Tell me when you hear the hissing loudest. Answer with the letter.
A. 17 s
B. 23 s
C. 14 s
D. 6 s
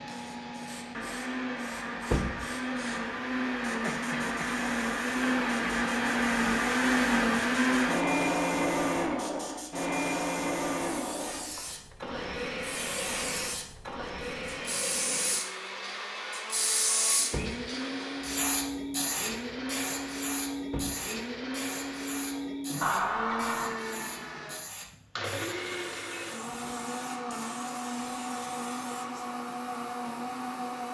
A.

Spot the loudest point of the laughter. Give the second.
23 s.